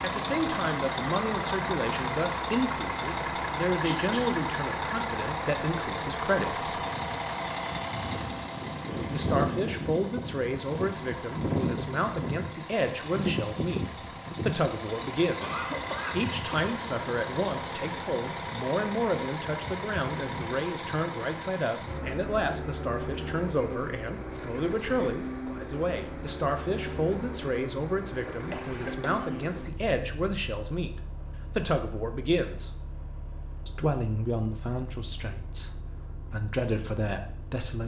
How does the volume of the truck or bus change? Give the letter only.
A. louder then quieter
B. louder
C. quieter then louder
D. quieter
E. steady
D.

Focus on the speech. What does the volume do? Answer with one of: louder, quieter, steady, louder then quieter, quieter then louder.
steady.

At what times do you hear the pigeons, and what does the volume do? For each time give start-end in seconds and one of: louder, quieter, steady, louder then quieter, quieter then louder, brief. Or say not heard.
not heard.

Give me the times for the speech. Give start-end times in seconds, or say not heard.
0.0-6.7, 9.1-32.7, 33.6-37.8.